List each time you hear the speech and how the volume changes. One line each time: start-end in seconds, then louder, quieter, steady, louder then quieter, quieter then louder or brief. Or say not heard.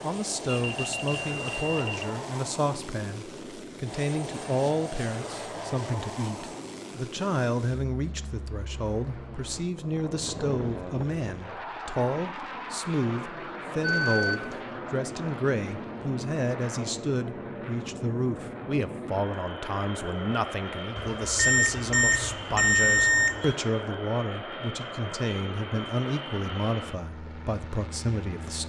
0.0-28.6 steady.